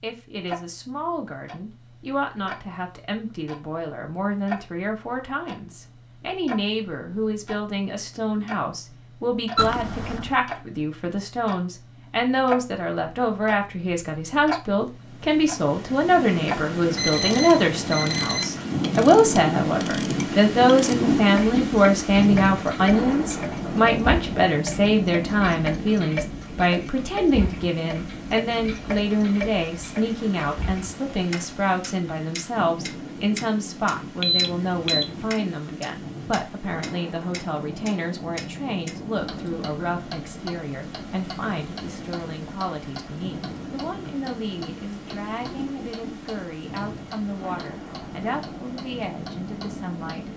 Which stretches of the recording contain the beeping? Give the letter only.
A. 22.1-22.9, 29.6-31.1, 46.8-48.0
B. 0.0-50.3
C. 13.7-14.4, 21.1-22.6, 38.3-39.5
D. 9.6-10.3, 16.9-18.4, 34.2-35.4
D.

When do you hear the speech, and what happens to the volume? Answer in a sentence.
The speech can be heard from 0.0 to 50.3 s, getting louder then quieter.